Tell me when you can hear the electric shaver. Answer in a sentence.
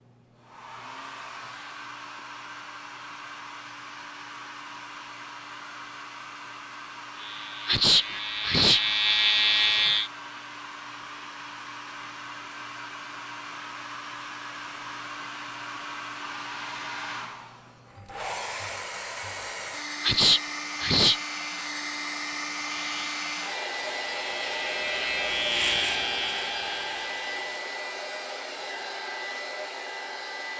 You can hear the electric shaver from 7.2 to 10.1 s and from 22.8 to 27.6 s.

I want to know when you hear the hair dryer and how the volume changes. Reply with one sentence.
The hair dryer can be heard from 0.0 to 30.5 s, getting louder.